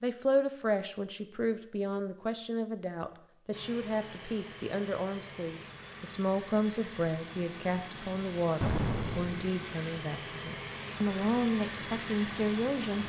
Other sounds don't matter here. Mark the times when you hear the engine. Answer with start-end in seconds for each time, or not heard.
3.5-13.0.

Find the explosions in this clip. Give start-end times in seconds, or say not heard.
8.6-9.5.